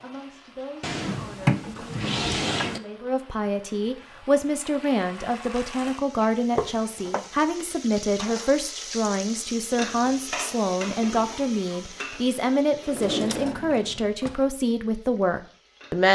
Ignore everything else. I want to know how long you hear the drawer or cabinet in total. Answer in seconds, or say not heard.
4 s.